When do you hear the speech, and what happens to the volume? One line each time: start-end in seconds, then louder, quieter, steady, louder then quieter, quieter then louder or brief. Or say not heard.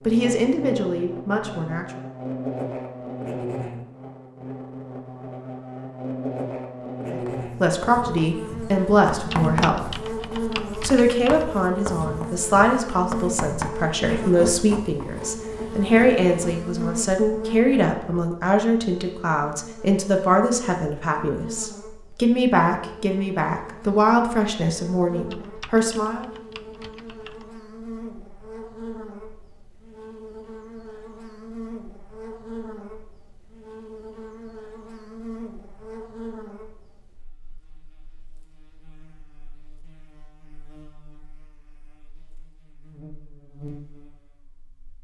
0.0-1.9 brief
7.1-9.8 brief
10.8-26.2 steady.